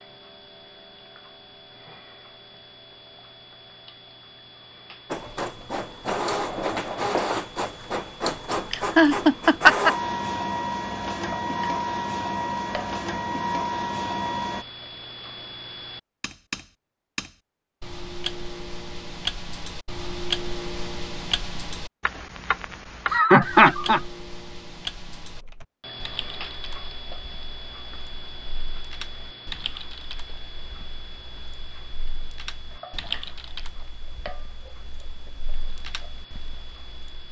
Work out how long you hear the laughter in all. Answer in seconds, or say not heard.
2 s.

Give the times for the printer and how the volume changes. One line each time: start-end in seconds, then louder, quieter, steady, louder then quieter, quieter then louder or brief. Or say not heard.
5.1-14.7 steady.